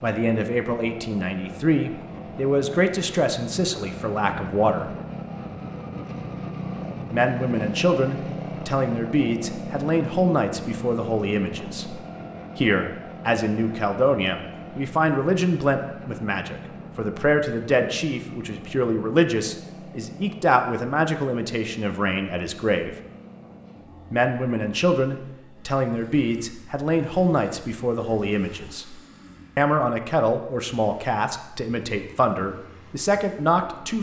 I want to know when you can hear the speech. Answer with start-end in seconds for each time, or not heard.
0.0-4.9, 7.1-22.9, 24.1-28.9, 29.6-33.9.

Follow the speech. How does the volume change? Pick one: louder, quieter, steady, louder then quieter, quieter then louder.
steady.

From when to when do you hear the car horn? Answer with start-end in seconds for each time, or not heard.
not heard.